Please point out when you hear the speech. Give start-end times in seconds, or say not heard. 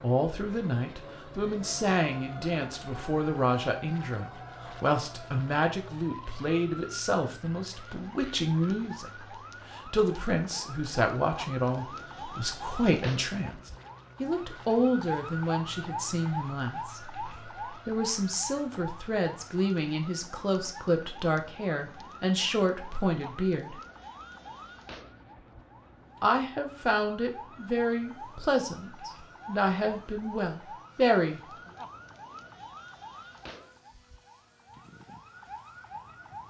0.0-23.8, 26.2-31.4.